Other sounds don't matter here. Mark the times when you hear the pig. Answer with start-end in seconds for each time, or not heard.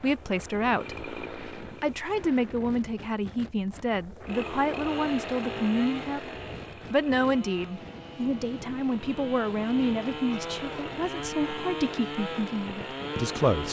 not heard.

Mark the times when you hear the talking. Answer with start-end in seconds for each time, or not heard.
0.0-6.3, 6.9-13.6.